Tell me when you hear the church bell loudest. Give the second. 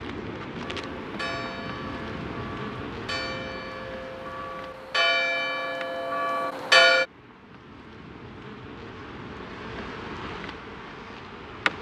7 s.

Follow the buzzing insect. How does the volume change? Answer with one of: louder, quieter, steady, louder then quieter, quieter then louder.
quieter then louder.